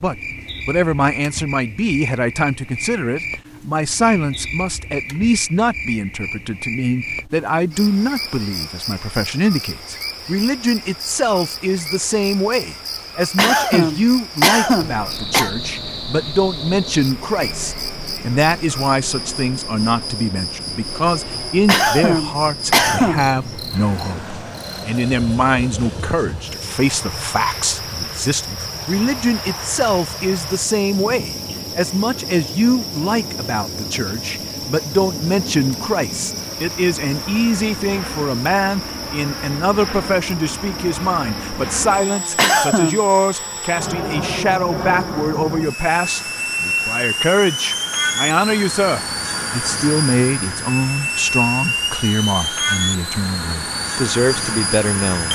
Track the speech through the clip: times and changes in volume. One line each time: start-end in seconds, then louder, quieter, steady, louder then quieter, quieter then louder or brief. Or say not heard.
0.0-55.3 steady.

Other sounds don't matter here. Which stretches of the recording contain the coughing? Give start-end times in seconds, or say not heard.
13.3-15.5, 21.6-23.2, 42.4-43.0.